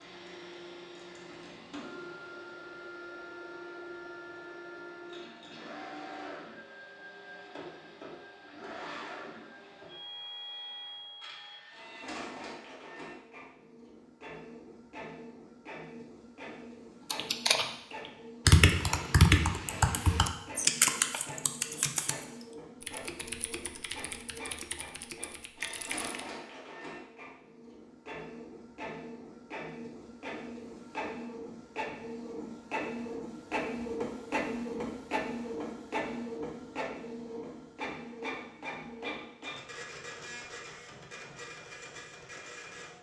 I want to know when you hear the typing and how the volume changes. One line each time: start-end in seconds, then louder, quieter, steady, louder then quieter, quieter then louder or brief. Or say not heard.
17.1-17.6 brief
18.4-26.2 quieter.